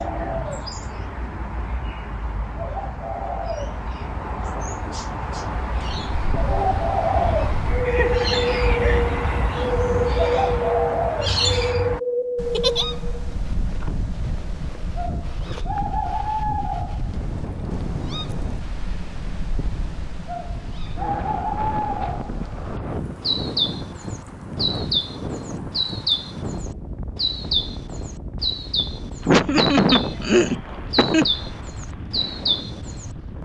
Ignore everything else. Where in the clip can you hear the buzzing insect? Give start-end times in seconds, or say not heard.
not heard.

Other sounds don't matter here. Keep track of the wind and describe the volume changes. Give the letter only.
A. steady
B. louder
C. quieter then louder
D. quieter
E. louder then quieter
D.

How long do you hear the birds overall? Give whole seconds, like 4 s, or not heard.
33 s.